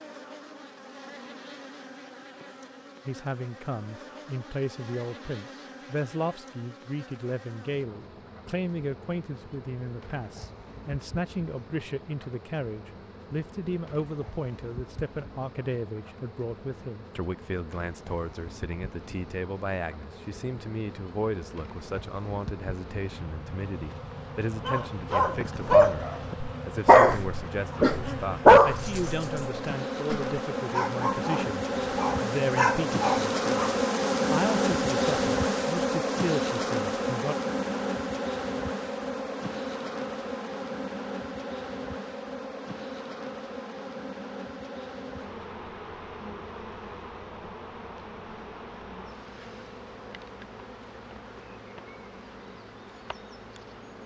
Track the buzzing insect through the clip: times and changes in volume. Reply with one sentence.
The buzzing insect can be heard from 0.0 to 54.0 s, getting louder then quieter.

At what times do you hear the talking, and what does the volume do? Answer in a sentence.
You can hear the talking from 3.0 to 37.4 s, at a steady volume.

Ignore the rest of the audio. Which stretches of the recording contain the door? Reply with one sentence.
You can't hear the door here.